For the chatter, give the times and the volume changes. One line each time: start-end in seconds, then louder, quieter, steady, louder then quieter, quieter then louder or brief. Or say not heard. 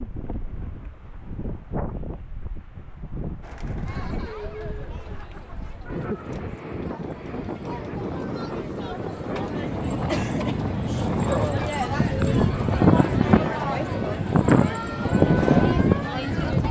3.4-16.6 louder.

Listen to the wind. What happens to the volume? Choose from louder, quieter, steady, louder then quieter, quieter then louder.
louder.